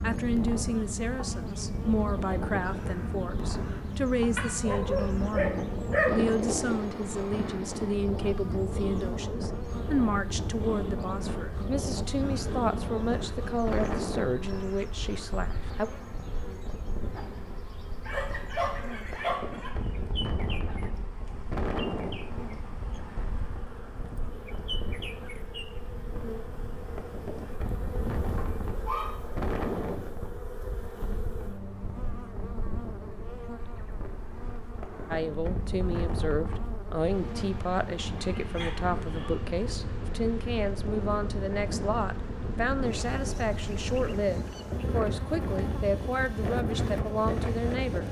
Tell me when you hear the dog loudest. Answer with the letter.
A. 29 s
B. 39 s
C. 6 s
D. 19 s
C.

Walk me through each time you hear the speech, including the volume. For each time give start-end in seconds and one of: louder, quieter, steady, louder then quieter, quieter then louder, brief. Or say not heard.
0.0-15.9 steady
35.1-48.0 steady.